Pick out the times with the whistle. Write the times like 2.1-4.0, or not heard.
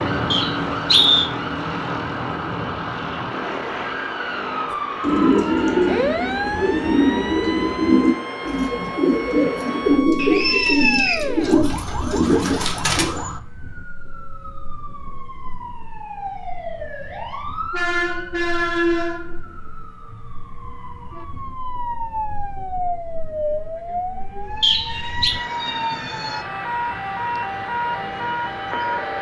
0.3-1.3, 10.2-11.2, 24.6-25.4.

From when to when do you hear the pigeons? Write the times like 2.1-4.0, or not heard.
4.7-13.2.